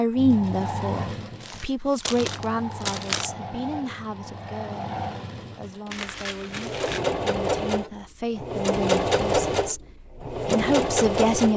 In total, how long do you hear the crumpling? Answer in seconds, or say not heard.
3 s.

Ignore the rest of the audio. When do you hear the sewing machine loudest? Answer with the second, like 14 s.
9 s.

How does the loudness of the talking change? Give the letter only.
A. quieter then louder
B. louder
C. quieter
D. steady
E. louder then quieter
A.